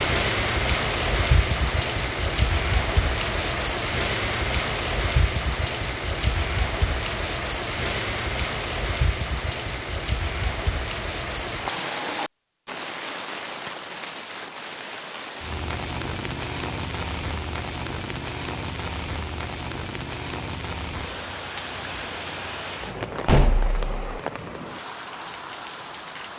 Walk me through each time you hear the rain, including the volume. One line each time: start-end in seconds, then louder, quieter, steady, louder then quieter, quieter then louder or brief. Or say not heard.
0.0-26.3 quieter.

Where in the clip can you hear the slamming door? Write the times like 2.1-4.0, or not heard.
23.2-24.2.